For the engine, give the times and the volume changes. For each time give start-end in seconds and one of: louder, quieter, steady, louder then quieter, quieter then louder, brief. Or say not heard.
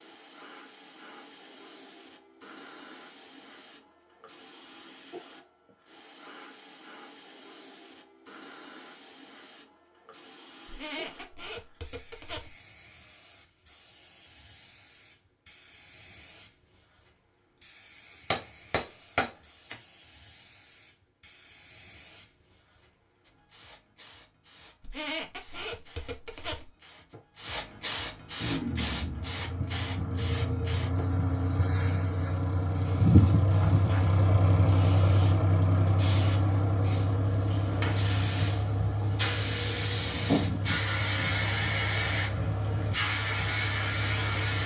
28.4-44.6 louder then quieter.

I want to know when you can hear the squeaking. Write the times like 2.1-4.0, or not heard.
10.7-12.6, 24.8-26.7.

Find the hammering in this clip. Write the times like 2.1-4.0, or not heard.
18.3-19.8.